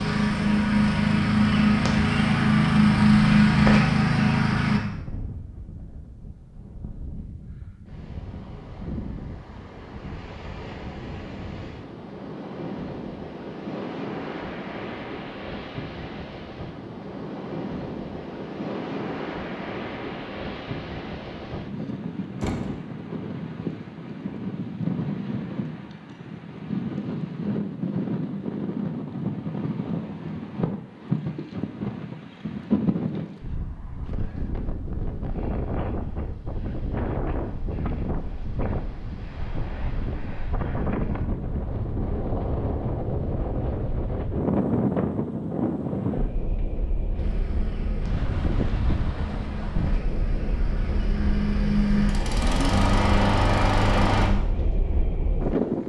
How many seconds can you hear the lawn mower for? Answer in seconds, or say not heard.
12 s.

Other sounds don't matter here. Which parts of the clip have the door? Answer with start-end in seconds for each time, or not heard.
22.4-22.8.